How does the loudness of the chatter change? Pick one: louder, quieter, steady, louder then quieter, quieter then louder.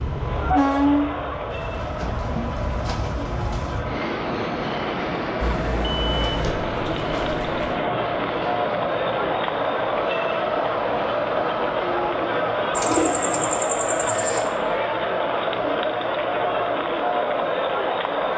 louder.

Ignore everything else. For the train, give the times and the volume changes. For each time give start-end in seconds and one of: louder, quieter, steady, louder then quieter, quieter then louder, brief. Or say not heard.
0.0-18.3 quieter.